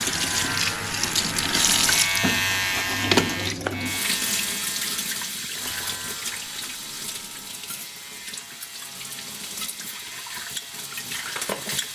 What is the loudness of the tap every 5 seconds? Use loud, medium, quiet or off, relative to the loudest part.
loud, medium, medium.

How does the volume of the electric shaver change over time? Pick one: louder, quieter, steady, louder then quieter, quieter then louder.
quieter.